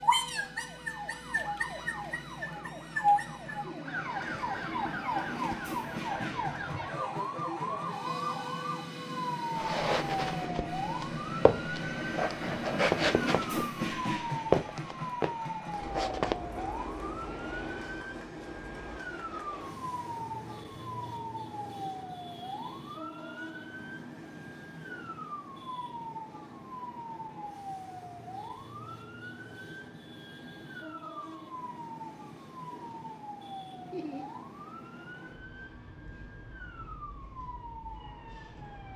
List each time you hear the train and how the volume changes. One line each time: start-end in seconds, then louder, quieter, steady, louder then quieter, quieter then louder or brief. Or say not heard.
0.0-38.9 louder then quieter.